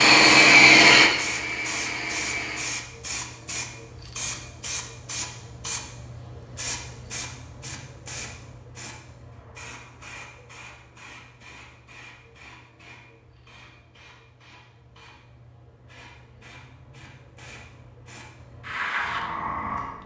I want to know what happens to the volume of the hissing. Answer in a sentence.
The volume of the hissing goes down, then up.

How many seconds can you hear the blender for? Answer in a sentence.
You can hear the blender for 3 seconds altogether.